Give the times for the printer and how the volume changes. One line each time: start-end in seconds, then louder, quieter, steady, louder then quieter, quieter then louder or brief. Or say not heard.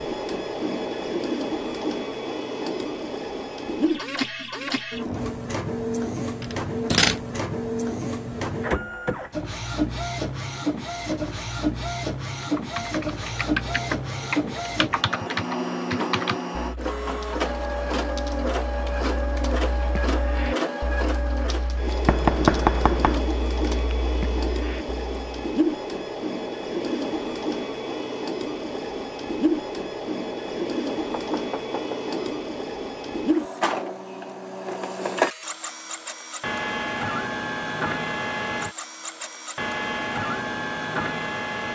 0.0-41.6 steady.